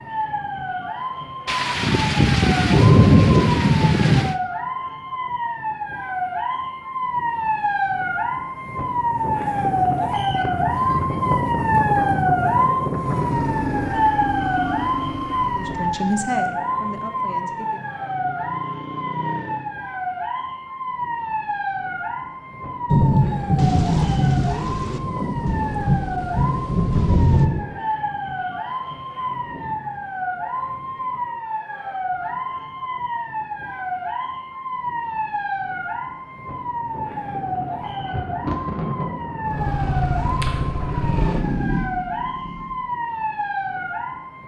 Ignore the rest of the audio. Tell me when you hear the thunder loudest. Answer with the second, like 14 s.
3 s.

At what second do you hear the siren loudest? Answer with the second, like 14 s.
12 s.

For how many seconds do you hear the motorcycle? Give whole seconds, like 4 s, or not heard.
10 s.